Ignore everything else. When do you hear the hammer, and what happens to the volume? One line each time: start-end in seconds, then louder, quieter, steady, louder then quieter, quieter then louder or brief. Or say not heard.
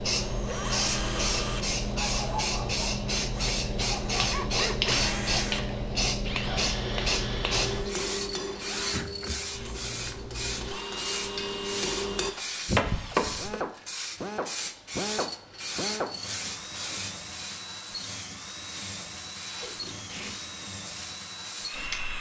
7.4-13.6 quieter then louder.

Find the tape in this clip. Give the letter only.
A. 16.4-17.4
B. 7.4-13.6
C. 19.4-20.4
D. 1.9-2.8
C.